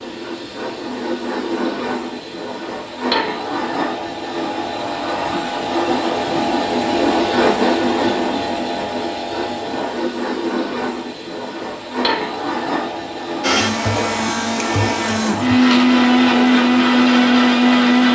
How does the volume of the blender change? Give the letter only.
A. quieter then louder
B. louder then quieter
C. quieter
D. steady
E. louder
E.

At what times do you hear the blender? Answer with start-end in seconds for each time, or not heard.
13.4-18.0.